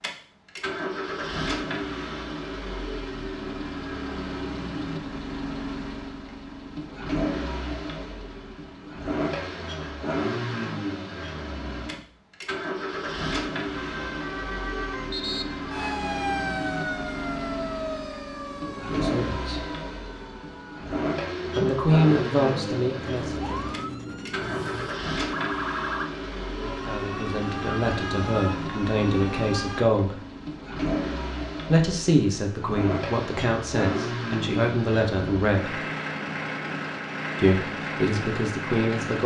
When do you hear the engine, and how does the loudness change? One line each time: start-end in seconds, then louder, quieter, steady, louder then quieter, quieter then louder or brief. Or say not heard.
0.0-39.2 steady.